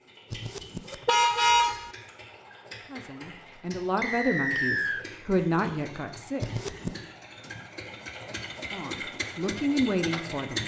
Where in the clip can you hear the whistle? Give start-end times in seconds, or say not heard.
4.0-5.0.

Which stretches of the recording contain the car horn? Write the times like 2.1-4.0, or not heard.
0.3-1.9, 6.4-7.0.